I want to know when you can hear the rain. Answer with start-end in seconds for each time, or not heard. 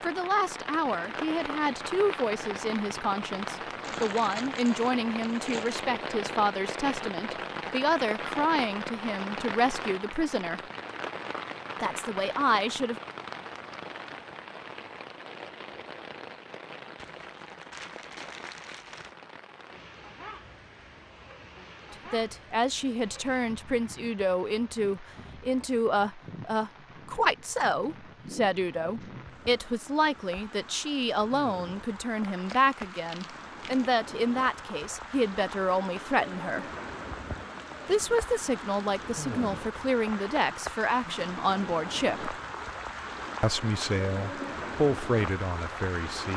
0.0-46.3.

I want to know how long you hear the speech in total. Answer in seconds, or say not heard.
34 s.